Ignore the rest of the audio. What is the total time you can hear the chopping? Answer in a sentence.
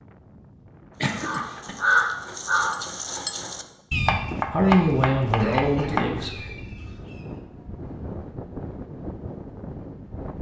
The chopping can be heard for 2 seconds in total.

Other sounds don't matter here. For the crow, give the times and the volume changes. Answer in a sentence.
The crow can be heard from 1.1 to 7.4 s, getting quieter.